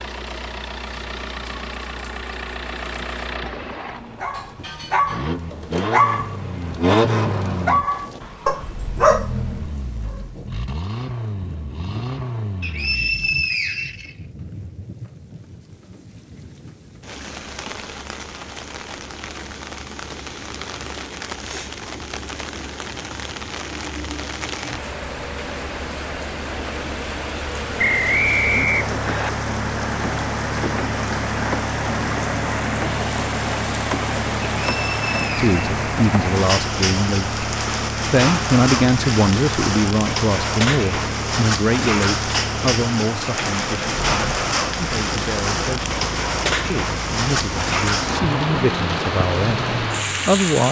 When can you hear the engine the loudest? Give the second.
7 s.